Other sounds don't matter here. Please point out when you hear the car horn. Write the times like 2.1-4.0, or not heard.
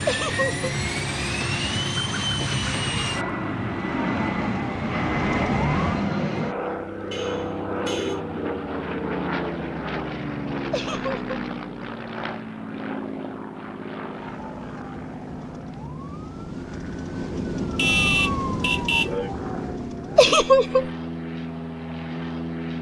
7.1-8.2, 17.8-19.1.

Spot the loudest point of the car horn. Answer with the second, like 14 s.
18 s.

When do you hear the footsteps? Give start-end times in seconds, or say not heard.
not heard.